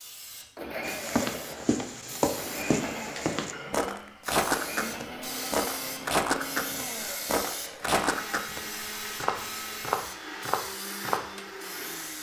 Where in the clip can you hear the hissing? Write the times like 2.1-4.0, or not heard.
0.0-12.1.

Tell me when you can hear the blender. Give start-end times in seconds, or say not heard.
0.6-12.1.